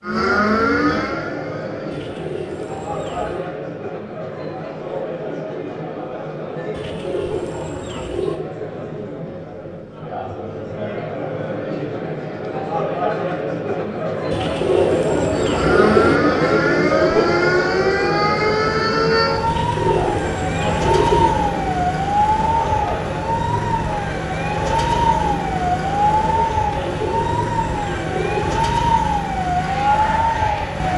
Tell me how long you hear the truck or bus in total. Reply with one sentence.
The truck or bus can't be heard in this clip.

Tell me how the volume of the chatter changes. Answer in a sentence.
The volume of the chatter goes up, then down.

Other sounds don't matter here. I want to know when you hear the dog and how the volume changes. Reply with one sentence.
The dog can't be heard in this clip.